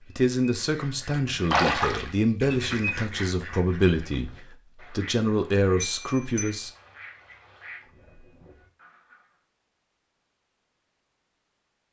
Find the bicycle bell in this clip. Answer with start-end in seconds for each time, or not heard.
5.8-6.7.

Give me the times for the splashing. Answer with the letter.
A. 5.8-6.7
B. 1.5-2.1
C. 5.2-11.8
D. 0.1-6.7
B.